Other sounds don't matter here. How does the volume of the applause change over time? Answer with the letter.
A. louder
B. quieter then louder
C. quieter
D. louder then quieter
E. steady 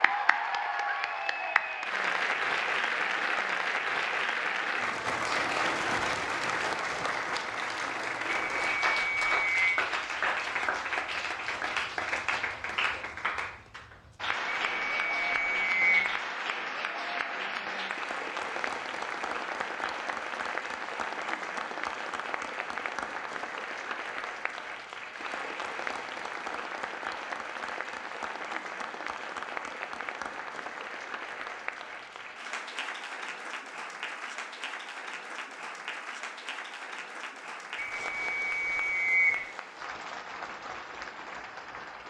C.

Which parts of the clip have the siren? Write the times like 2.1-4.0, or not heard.
not heard.